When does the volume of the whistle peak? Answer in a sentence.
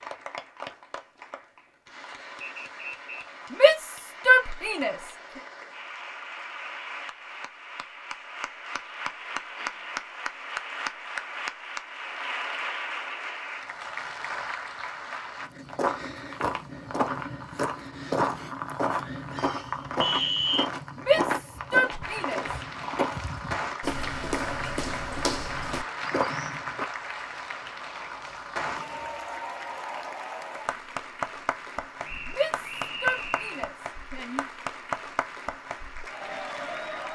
The volume of the whistle peaks at 20 seconds.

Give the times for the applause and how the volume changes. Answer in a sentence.
The applause can be heard from 0.0 to 15.5 s, getting louder; and from 22.0 to 37.0 s, at a steady volume.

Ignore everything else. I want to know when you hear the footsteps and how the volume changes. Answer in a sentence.
You can hear the footsteps from 15.4 to 26.9 s, at a steady volume.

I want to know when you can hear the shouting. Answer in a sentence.
You can hear the shouting from 3.5 to 5.0 s, from 20.9 to 22.4 s and from 32.2 to 34.5 s.